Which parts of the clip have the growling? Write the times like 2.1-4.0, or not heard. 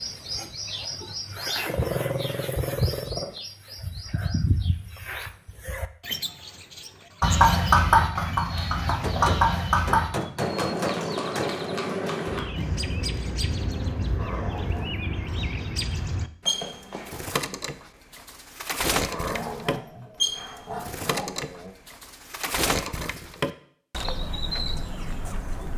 1.6-3.4, 14.2-15.1, 19.1-21.8.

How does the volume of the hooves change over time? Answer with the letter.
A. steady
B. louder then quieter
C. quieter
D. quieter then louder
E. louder
C.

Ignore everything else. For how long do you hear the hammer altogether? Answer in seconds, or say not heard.
3 s.